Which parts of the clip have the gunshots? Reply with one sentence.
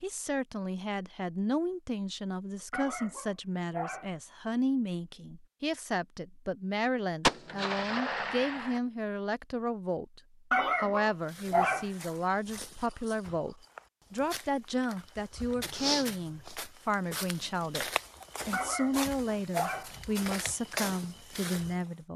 The gunshots can be heard from 7.2 to 8.8 s.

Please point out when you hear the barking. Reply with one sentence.
You can hear the barking from 2.7 to 4.1 s, from 10.5 to 11.9 s and from 18.5 to 19.9 s.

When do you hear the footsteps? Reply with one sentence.
The footsteps can be heard from 11.2 to 21.8 s.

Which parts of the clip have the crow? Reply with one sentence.
The crow can't be heard in this clip.